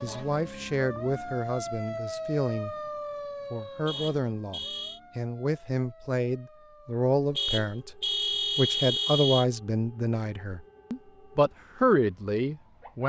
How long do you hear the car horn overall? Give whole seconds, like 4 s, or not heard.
3 s.